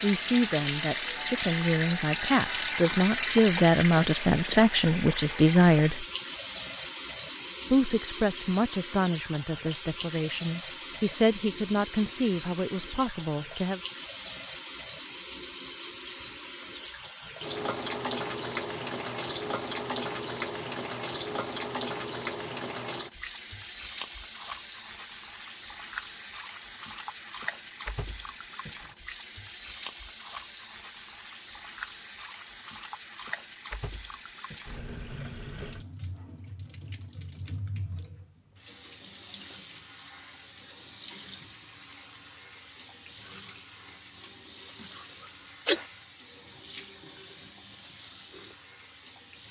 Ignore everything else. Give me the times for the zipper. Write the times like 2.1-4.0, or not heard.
not heard.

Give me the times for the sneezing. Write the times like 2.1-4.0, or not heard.
44.8-45.9.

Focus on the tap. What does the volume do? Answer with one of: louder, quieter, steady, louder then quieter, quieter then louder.
quieter.